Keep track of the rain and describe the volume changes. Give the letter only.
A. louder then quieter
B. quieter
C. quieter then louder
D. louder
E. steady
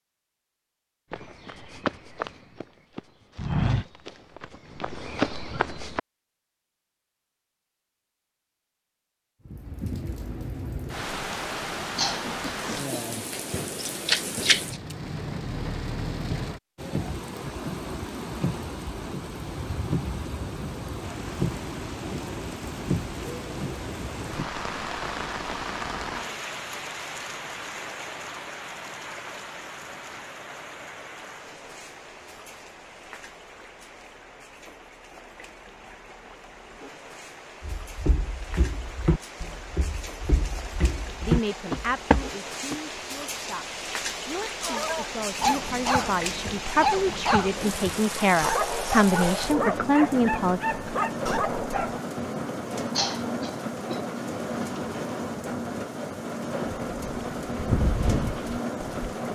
C.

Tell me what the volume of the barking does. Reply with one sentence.
The loudness of the barking stays about the same.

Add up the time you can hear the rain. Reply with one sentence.
You can hear the rain for 50 seconds altogether.